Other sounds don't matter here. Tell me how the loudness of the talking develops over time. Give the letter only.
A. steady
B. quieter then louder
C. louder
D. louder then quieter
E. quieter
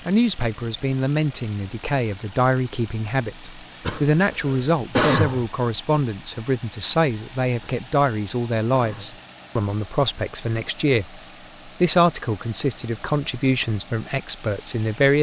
A.